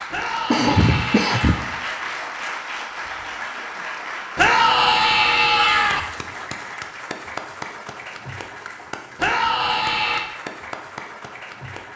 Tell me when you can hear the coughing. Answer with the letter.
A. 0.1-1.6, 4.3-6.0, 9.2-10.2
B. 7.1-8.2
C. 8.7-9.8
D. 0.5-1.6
D.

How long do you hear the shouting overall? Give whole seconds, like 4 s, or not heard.
4 s.